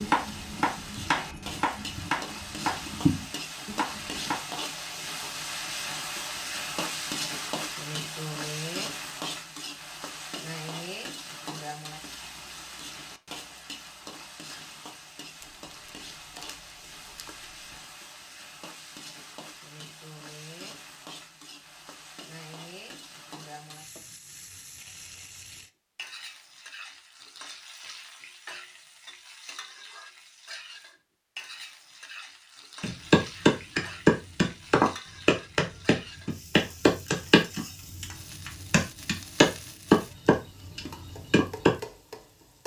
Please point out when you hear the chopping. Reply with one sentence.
The chopping can be heard from 0.0 to 4.4 s and from 32.8 to 41.8 s.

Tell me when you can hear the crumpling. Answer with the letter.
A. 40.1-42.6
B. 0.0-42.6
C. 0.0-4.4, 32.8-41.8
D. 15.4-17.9
D.